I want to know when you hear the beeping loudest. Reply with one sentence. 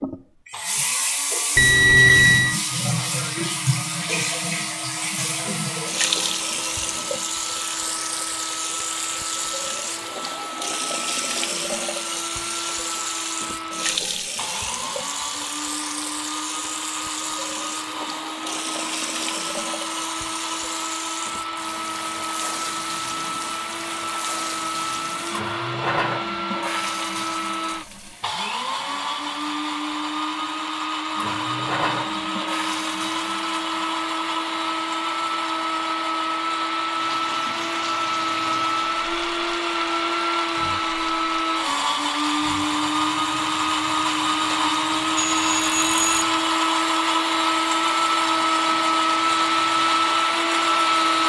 The volume of the beeping peaks at 2 seconds.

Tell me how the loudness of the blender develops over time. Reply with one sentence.
The loudness of the blender goes up.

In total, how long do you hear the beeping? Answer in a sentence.
You can hear the beeping for 2 seconds altogether.